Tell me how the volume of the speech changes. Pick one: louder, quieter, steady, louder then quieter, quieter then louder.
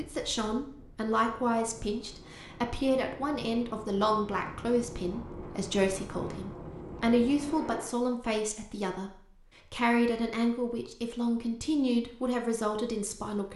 steady.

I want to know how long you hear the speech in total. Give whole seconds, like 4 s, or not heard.
13 s.